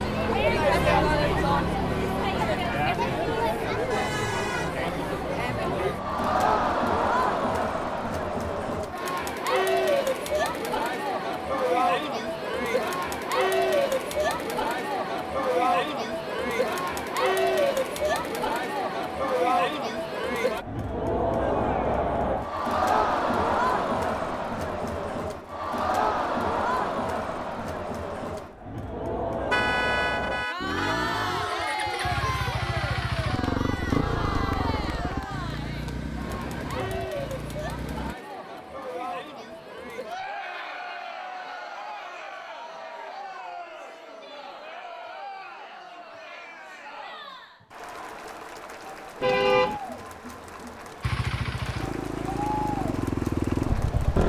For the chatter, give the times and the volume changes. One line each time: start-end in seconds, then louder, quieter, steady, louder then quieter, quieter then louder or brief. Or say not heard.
0.0-54.2 quieter.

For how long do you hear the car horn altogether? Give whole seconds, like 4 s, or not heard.
3 s.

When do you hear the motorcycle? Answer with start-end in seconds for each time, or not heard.
0.0-6.8, 30.6-38.1, 51.0-54.2.